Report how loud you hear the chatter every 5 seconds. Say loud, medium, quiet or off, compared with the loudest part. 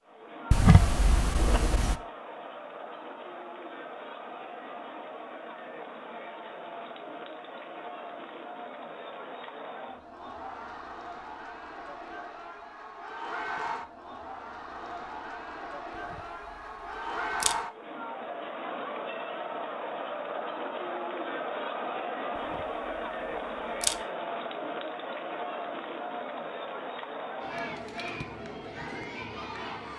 medium, medium, medium, loud, loud, loud.